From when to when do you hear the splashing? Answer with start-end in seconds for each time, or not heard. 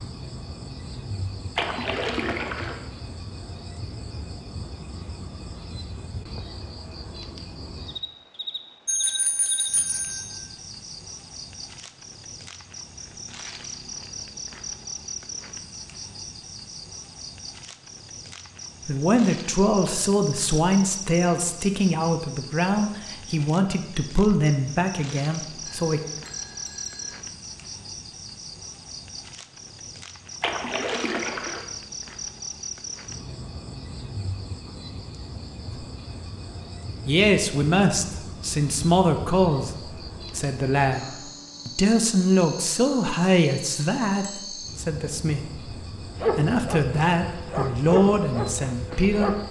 1.6-2.8, 30.4-31.6.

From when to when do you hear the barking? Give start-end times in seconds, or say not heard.
46.1-49.4.